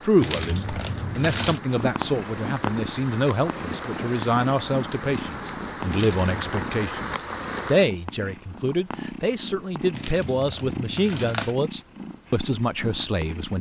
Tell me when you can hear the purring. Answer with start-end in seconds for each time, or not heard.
1.6-13.5.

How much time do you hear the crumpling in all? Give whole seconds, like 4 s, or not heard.
4 s.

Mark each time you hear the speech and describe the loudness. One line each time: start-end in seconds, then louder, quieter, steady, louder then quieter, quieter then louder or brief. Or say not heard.
0.0-13.5 steady.